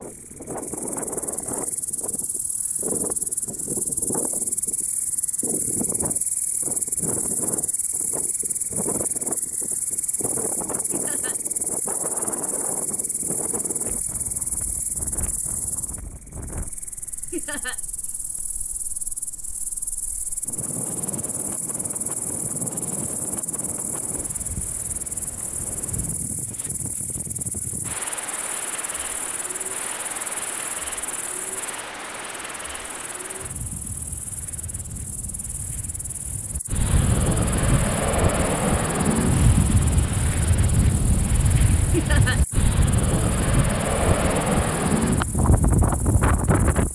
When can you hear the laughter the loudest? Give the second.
42 s.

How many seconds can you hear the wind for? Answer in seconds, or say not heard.
47 s.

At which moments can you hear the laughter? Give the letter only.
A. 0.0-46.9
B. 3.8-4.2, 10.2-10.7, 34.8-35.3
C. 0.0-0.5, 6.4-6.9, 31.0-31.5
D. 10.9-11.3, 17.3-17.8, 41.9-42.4
D.